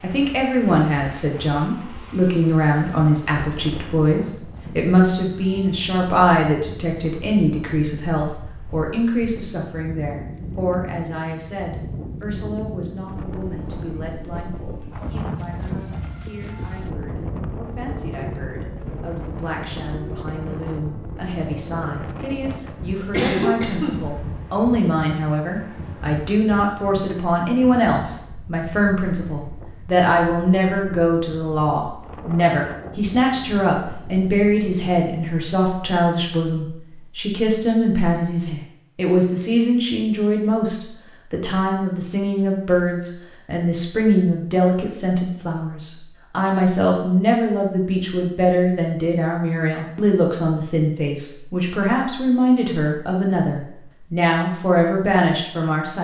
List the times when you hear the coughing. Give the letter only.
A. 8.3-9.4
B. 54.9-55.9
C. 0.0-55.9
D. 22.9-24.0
D.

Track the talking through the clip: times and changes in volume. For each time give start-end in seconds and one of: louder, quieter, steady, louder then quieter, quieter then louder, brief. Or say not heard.
0.0-55.9 quieter then louder.